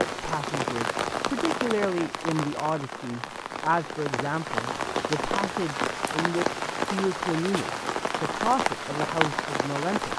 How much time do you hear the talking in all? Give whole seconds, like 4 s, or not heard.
10 s.